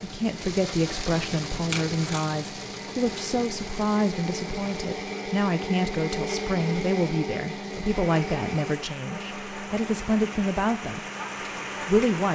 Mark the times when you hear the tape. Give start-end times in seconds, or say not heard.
1.7-2.4.